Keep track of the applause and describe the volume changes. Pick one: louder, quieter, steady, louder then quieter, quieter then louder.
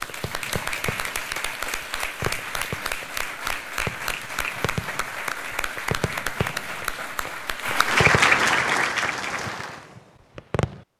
louder.